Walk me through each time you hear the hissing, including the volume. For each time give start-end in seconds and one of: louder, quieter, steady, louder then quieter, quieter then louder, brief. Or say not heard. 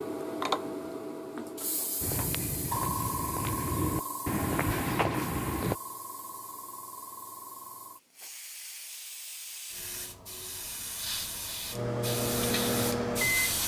0.0-13.6 quieter then louder.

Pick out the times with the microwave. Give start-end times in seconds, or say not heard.
11.7-13.6.